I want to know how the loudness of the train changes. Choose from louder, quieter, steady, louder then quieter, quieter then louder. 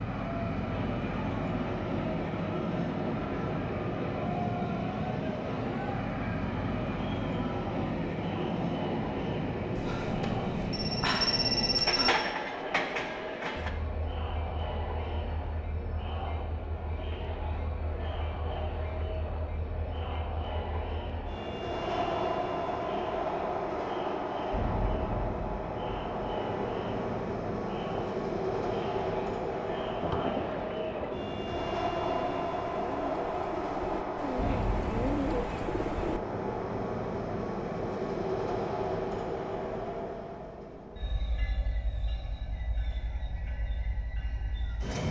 steady.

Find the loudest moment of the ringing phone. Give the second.
12 s.